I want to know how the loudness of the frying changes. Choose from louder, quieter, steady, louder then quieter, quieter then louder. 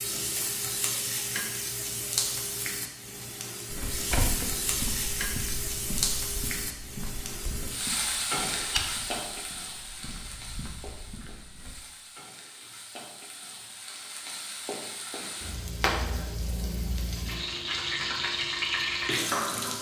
quieter then louder.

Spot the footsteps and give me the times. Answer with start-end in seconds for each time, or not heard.
3.7-11.8.